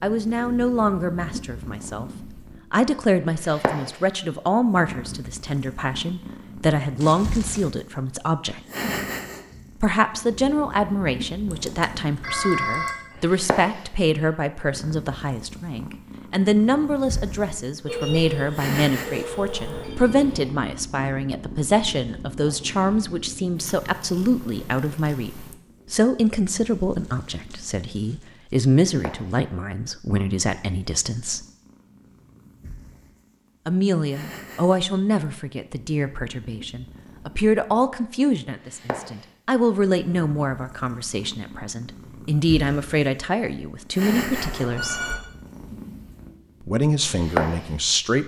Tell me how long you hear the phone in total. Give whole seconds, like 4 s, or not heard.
5 s.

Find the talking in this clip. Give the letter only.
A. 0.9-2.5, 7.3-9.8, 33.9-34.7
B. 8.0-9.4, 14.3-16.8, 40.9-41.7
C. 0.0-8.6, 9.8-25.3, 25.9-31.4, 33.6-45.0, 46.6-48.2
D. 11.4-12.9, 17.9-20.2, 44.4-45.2
C.